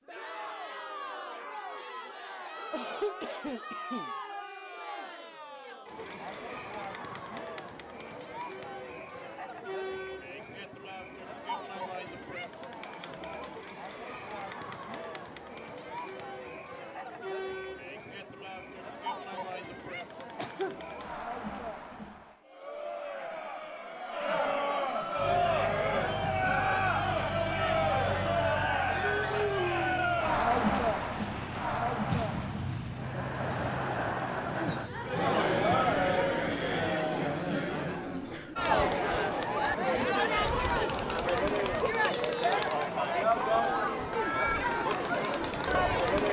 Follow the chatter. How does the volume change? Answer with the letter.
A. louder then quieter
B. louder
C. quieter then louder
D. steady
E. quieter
B.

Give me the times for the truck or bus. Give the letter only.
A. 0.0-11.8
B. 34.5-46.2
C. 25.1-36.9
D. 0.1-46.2
C.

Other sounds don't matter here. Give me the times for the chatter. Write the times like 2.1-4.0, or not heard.
0.1-46.2.